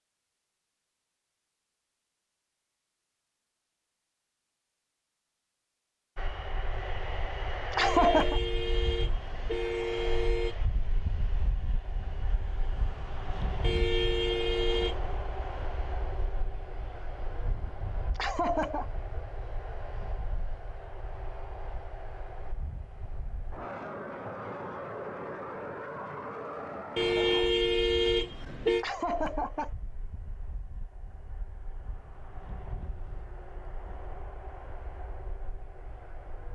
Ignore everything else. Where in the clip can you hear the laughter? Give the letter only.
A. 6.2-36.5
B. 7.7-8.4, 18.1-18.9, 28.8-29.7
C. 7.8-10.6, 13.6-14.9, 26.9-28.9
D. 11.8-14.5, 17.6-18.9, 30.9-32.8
B.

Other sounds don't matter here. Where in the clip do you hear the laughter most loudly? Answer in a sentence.
The volume of the laughter peaks at 8 seconds.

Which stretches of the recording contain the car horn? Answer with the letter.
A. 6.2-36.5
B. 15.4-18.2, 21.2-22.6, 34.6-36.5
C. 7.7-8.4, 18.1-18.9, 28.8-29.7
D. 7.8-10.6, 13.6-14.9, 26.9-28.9
D.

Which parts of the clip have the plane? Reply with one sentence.
The plane can be heard from 6.2 to 36.5 s.